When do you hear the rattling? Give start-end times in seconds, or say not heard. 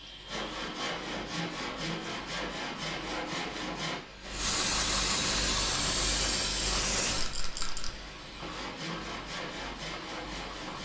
7.2-7.9.